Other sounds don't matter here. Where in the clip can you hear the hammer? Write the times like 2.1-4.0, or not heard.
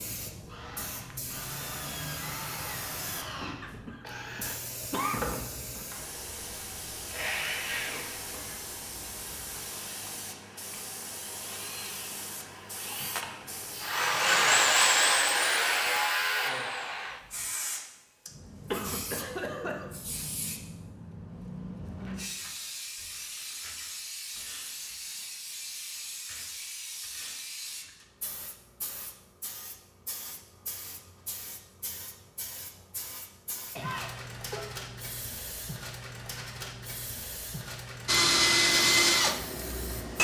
not heard.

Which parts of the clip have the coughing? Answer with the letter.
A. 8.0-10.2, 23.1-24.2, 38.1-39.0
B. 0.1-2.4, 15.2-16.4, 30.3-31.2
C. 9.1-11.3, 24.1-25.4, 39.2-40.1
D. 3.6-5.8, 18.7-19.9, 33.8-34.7
D.